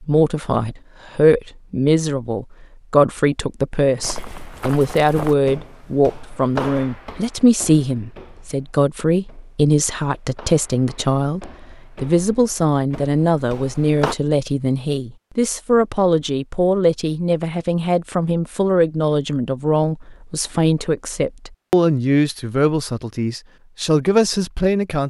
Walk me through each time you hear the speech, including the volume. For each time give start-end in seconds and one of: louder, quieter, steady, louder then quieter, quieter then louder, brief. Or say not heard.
0.0-25.0 steady.